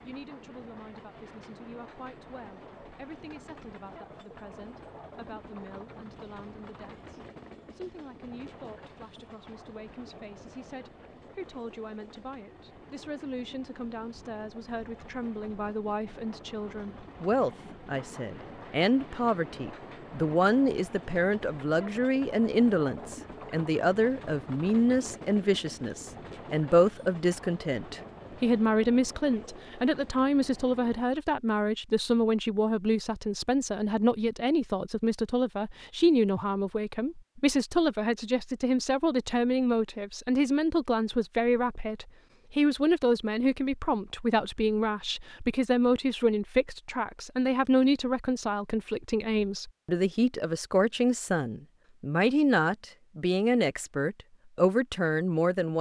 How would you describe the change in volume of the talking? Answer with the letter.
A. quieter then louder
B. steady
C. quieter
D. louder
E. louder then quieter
D.